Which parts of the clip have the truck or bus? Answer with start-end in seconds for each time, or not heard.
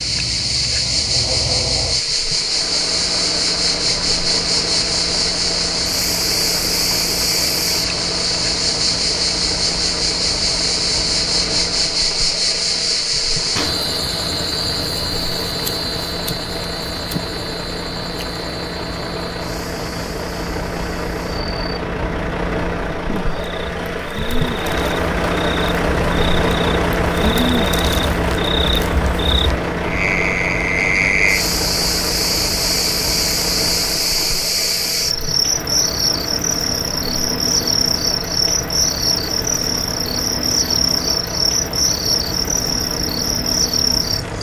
0.0-44.3.